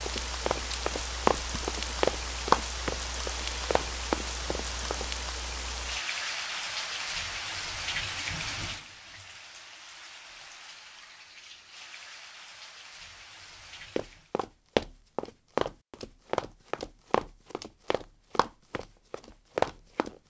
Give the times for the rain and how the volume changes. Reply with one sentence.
The rain can be heard from 0.0 to 14.3 s, getting quieter.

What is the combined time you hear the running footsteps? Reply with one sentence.
The running footsteps can be heard for 11 seconds in total.